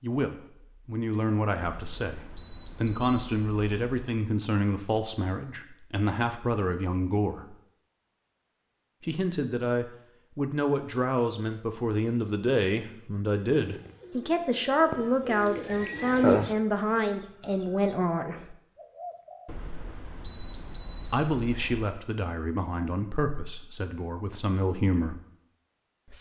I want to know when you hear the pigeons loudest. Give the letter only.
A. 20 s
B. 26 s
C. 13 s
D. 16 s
D.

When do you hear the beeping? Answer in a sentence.
The beeping can be heard from 1.6 to 4.2 s and from 19.4 to 21.9 s.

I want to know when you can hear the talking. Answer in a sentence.
The talking can be heard from 0.0 to 7.5 s, from 9.0 to 18.6 s and from 21.1 to 25.2 s.